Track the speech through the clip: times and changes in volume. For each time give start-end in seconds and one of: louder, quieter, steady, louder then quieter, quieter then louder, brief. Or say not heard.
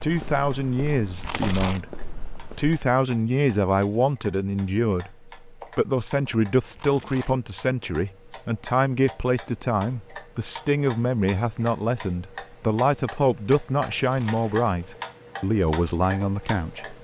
0.0-16.9 steady.